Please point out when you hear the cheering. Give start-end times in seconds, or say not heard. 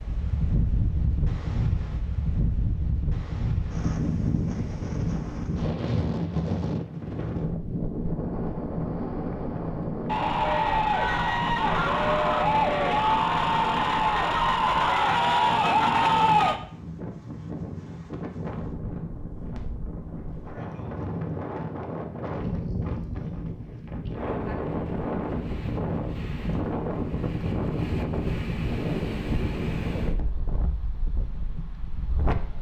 10.1-16.6.